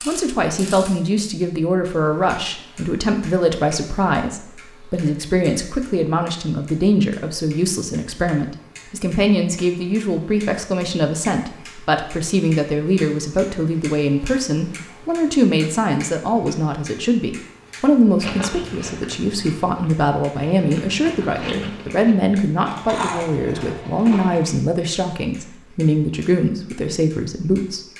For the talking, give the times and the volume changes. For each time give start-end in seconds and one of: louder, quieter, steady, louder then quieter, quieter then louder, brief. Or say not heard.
0.1-27.8 steady.